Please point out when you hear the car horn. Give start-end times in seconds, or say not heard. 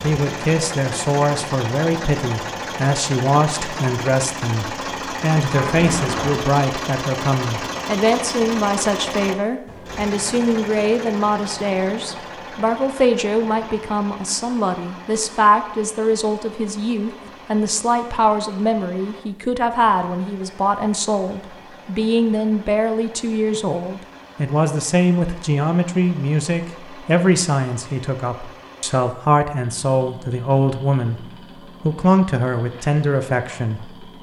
5.5-6.5.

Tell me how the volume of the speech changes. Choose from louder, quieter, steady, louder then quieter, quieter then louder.
steady.